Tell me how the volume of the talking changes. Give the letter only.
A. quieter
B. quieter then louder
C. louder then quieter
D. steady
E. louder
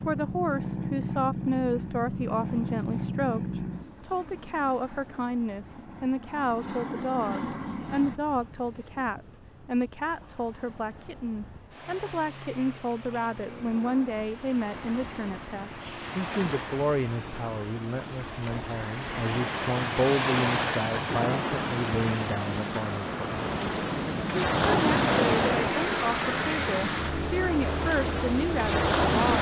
D.